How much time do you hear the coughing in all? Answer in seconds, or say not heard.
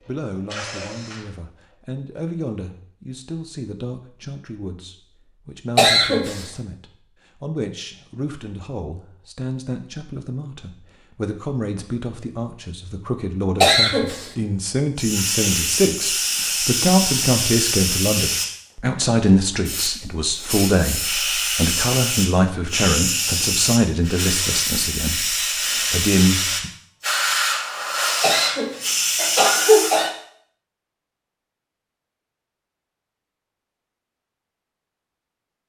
3 s.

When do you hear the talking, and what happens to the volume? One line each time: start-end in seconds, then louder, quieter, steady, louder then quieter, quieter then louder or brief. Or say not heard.
0.1-26.7 louder.